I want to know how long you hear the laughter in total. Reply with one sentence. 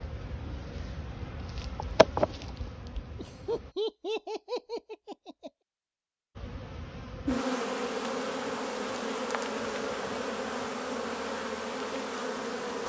You can hear the laughter for 2 seconds altogether.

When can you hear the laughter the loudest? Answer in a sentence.
The volume of the laughter peaks at 4 seconds.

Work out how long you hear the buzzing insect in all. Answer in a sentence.
The buzzing insect can be heard for 10 seconds in total.